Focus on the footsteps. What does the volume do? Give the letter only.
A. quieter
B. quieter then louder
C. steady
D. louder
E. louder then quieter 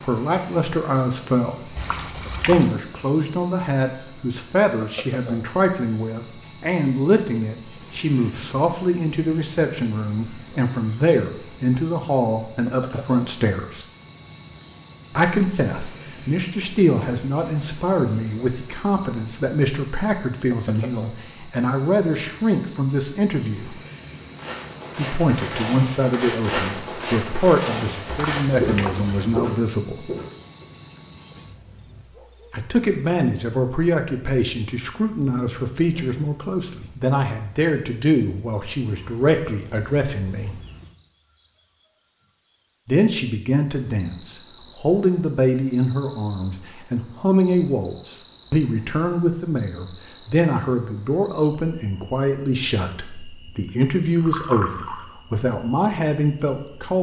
D.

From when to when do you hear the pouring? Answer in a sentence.
The pouring can be heard from 1.8 to 2.8 s, from 28.1 to 29.4 s and from 54.0 to 55.0 s.